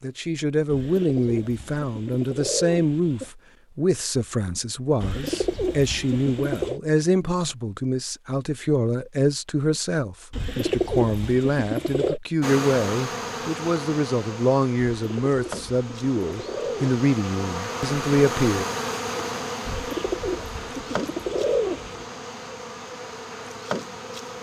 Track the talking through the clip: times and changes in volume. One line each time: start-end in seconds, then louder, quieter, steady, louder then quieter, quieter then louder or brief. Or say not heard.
0.0-18.6 steady.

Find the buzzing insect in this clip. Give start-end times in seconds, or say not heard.
12.4-24.3.